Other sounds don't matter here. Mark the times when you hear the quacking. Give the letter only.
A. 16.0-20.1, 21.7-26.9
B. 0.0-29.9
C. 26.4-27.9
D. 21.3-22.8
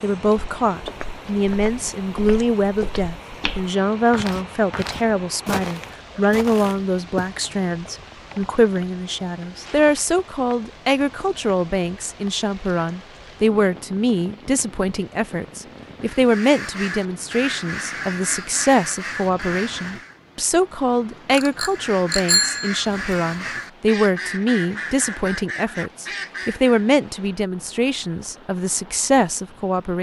A.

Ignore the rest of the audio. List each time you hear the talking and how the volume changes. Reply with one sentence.
The talking can be heard from 0.0 to 29.9 s, at a steady volume.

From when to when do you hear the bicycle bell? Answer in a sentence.
The bicycle bell can be heard from 21.3 to 22.8 s.